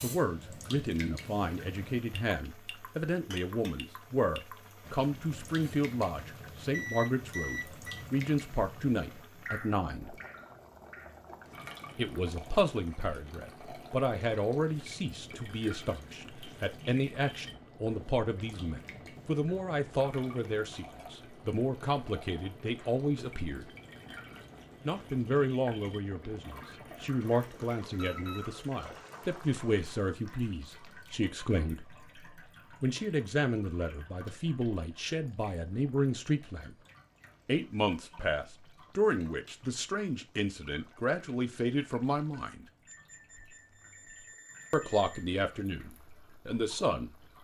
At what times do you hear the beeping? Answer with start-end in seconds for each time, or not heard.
6.7-8.0, 27.9-28.6, 42.9-45.2.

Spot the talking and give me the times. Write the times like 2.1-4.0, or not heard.
0.0-10.2, 11.9-23.6, 24.9-31.9, 32.8-36.8, 37.5-42.6, 44.7-47.1.